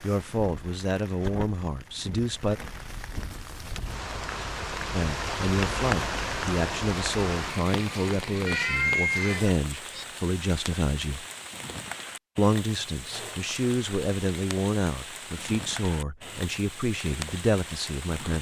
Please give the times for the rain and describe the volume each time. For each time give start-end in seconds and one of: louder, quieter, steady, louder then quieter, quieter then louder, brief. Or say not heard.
0.0-18.3 louder then quieter.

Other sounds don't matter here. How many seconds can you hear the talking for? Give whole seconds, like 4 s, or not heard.
15 s.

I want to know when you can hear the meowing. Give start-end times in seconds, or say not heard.
8.4-10.1.